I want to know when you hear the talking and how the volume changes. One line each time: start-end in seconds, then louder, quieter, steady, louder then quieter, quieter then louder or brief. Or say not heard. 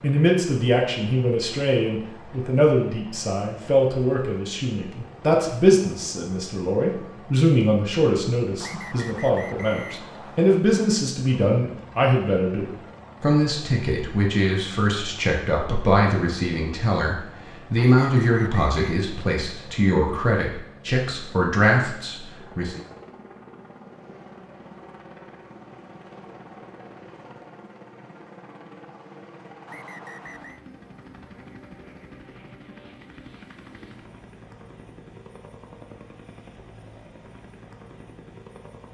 0.0-22.8 steady.